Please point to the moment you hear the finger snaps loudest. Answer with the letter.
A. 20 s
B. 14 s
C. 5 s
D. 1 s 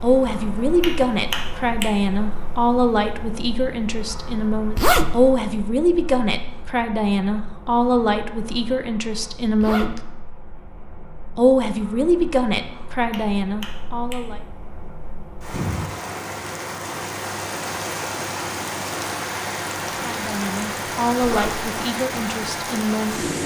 D.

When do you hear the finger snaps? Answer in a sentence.
You can hear the finger snaps from 0.8 to 1.9 s and from 13.1 to 14.2 s.